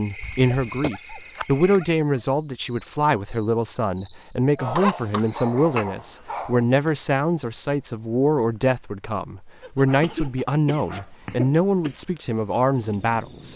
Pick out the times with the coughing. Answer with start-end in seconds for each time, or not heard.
0.2-0.9, 4.5-5.8, 10.0-11.9.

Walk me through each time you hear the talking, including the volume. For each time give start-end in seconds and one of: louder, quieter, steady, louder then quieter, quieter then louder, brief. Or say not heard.
0.0-13.5 steady.